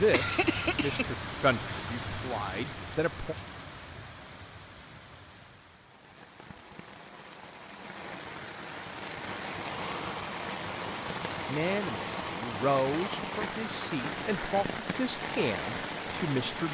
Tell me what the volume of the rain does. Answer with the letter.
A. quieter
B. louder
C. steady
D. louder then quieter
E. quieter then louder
E.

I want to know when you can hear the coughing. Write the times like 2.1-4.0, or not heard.
0.1-1.1.